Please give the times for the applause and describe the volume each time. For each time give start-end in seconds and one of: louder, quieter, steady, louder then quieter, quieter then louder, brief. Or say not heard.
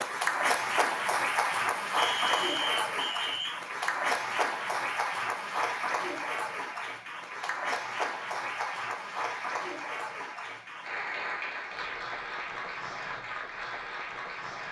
0.0-14.6 quieter.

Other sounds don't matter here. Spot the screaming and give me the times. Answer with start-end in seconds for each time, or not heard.
not heard.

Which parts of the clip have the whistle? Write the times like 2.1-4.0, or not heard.
1.9-3.5.